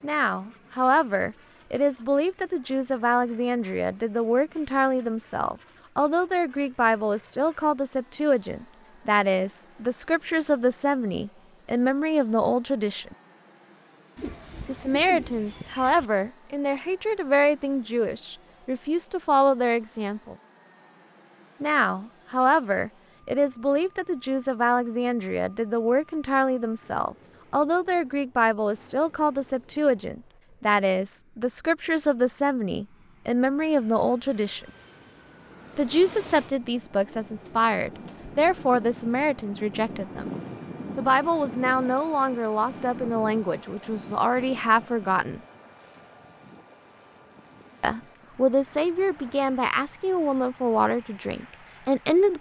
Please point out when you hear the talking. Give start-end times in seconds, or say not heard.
0.0-13.2, 14.7-20.4, 21.6-34.7, 35.8-40.3, 41.0-45.4, 47.8-52.3.